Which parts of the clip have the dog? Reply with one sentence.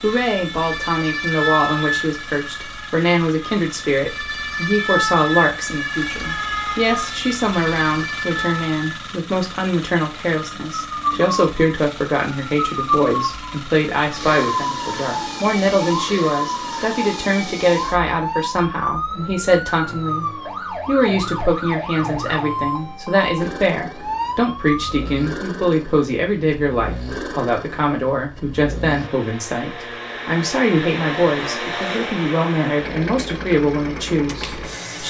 You can't hear the dog here.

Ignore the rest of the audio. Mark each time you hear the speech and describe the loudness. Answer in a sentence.
The speech can be heard from 0.0 to 20.2 s, at a steady volume; and from 20.9 to 35.0 s, at a steady volume.